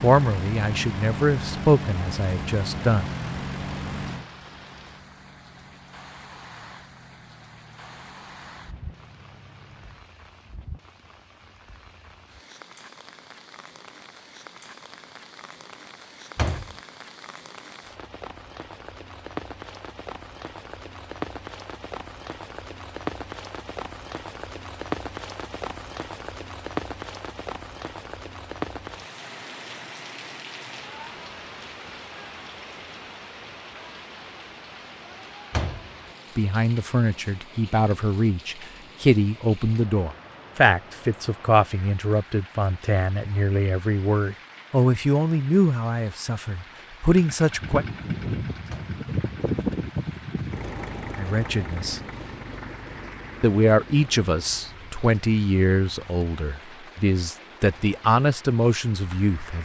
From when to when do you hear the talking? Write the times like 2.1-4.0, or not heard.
0.0-3.0, 36.4-47.9, 51.1-52.0, 53.4-59.6.